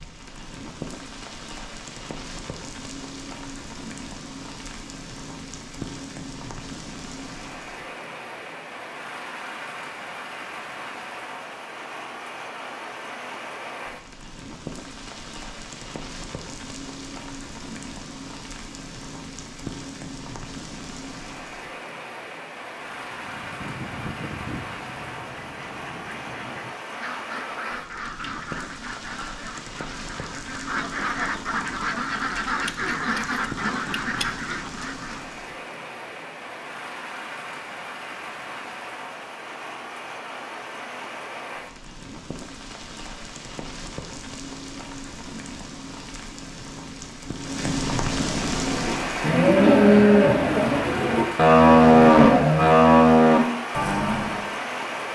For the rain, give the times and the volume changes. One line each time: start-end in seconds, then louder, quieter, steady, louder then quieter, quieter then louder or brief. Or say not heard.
0.0-55.1 louder.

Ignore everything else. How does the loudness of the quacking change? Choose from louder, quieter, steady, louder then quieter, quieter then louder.
louder.